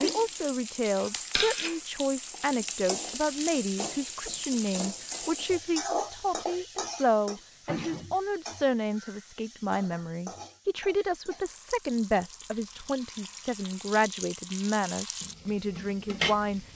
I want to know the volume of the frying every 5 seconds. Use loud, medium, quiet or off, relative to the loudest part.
loud, loud, medium, loud.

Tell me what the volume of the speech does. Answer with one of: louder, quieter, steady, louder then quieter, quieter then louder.
steady.